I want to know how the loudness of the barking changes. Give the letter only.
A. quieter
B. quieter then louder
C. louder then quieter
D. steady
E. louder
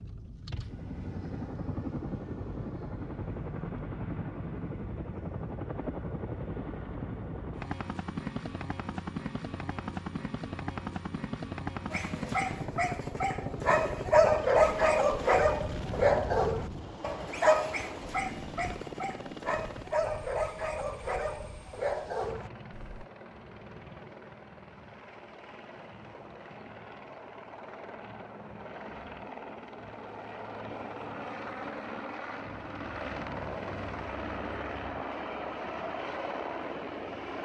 A.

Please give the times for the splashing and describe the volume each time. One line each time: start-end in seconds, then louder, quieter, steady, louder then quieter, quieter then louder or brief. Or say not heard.
not heard.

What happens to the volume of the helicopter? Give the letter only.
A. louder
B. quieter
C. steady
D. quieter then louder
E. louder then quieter
D.